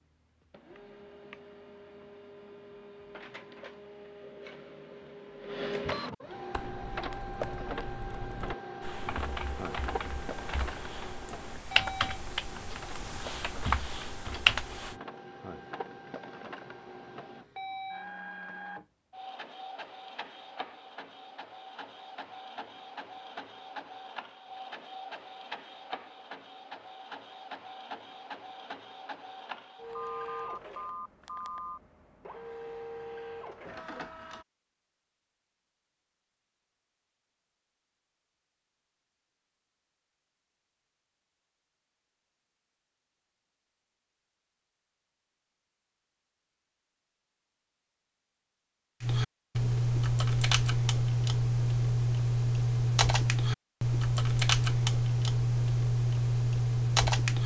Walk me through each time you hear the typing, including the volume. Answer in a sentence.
You can hear the typing from 6.5 to 14.9 s, getting louder; and from 49.0 to 57.4 s, at a steady volume.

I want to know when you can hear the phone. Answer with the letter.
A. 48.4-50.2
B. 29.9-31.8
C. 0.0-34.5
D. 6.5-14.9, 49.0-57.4
B.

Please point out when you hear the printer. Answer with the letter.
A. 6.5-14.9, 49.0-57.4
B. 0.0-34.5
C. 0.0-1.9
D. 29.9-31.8
B.